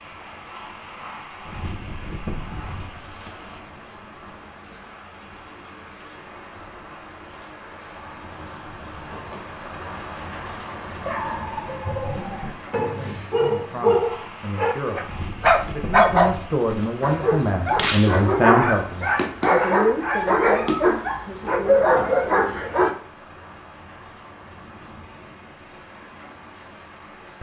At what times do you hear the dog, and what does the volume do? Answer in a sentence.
The dog can be heard from 11.0 to 22.9 s, getting louder.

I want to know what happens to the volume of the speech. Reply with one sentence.
The loudness of the speech goes up, then down.